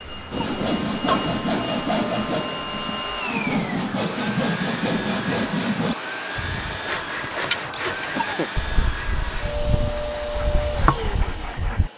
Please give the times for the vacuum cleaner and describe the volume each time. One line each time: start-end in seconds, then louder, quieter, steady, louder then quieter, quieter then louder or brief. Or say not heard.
0.0-11.9 steady.